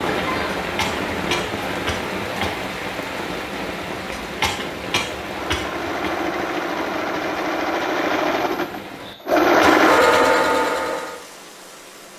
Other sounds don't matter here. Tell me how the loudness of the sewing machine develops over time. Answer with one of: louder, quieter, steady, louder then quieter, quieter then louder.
louder.